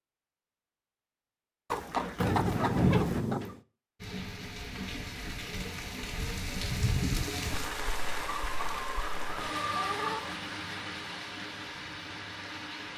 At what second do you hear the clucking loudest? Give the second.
3 s.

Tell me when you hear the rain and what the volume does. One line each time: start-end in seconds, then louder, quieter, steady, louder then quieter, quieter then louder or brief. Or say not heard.
4.0-12.9 louder then quieter.